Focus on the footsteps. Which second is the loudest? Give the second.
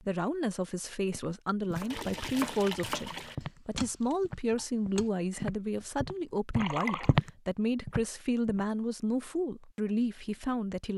7 s.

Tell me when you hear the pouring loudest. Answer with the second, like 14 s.
7 s.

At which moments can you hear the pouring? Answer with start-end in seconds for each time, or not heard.
1.9-3.4, 6.5-7.2.